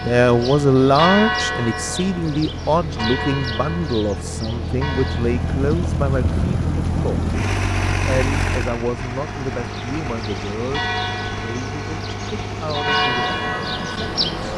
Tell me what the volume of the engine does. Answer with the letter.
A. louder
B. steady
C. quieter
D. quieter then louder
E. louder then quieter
E.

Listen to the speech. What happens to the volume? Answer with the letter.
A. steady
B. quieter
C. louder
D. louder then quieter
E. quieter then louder
B.